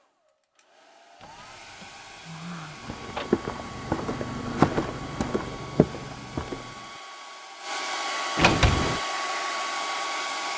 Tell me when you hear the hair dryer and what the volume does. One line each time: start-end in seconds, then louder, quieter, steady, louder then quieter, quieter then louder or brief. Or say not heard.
0.0-10.5 louder.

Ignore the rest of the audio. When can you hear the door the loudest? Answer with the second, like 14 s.
9 s.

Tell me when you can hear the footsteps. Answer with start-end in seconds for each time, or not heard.
2.8-6.8.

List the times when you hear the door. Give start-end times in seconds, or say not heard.
1.2-3.3, 8.3-9.0.